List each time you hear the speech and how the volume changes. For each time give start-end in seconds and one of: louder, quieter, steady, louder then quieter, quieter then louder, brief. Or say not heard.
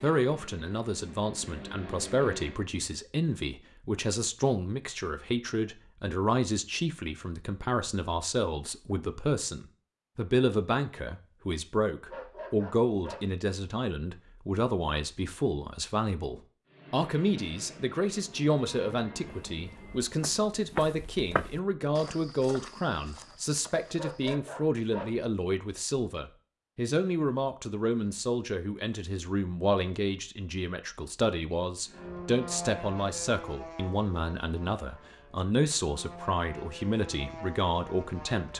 0.0-38.5 steady.